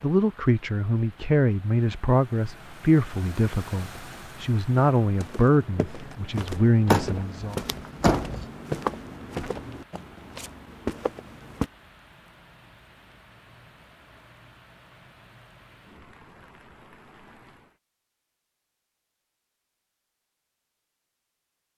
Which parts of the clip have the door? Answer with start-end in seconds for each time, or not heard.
6.8-8.4.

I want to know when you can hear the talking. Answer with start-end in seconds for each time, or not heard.
0.0-7.6.